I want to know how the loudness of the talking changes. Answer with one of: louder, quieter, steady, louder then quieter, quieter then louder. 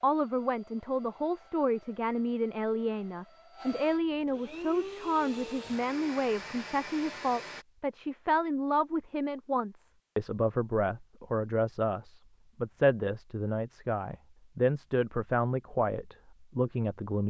steady.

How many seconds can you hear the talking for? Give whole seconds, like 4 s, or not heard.
17 s.